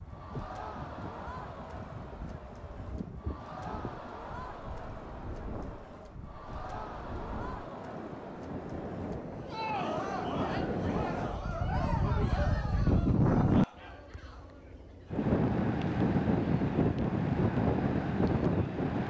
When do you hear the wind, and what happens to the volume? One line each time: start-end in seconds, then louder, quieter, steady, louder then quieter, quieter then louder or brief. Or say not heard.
0.0-19.0 louder.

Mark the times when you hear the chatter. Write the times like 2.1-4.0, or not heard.
0.0-19.0.